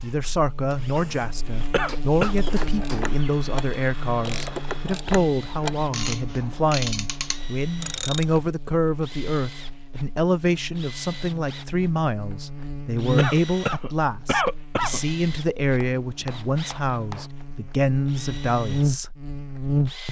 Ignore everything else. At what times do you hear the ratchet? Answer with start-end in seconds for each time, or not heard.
2.4-8.5.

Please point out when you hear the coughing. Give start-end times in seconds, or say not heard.
1.7-2.4, 13.2-15.0.